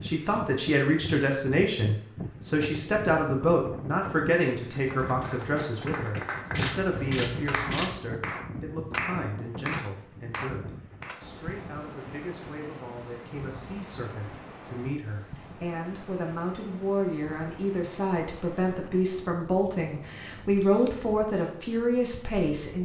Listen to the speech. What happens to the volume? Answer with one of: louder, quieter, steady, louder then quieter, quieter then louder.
quieter then louder.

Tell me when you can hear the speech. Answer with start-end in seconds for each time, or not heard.
0.0-22.8.